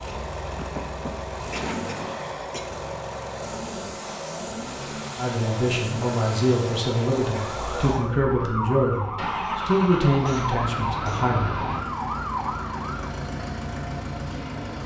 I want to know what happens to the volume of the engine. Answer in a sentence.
The loudness of the engine stays about the same.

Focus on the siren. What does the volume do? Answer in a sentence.
The volume of the siren stays about the same.